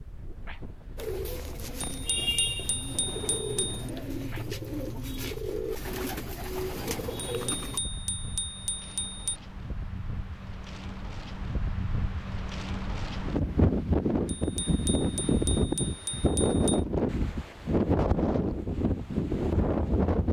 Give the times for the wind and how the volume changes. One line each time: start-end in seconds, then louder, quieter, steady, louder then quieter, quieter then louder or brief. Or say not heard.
0.0-20.2 louder.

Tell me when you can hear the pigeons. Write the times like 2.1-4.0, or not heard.
0.9-7.8.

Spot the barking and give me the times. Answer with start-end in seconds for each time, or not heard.
not heard.